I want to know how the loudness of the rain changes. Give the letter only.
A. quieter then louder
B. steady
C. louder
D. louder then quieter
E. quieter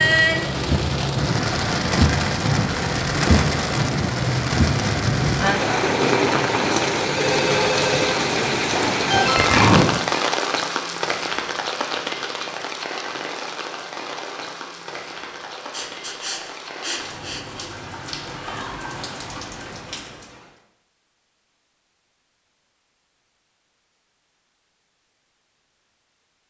E.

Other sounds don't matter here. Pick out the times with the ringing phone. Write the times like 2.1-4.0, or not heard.
7.2-8.2.